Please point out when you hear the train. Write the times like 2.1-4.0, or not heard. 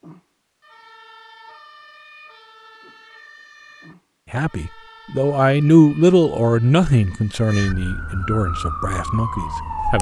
not heard.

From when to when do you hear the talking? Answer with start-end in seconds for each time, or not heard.
4.3-9.9.